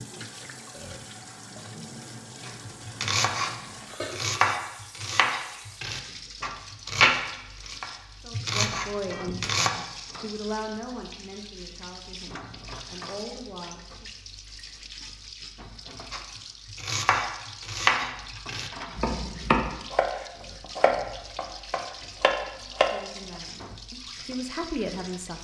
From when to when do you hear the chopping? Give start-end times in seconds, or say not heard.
2.5-9.7, 16.1-22.9.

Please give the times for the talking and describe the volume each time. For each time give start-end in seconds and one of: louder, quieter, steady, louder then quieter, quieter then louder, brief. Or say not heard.
8.2-14.1 quieter then louder
22.6-25.3 brief.